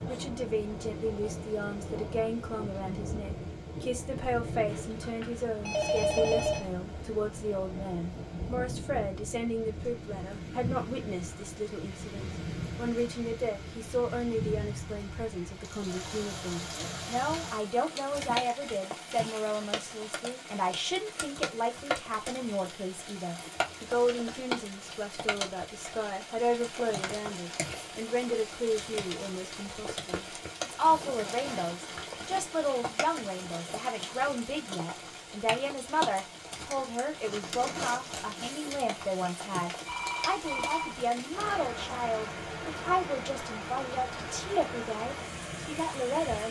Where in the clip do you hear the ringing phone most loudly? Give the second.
6 s.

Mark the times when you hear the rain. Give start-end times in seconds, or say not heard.
0.0-46.4.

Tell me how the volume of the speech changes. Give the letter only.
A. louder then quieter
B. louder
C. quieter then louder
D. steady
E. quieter
D.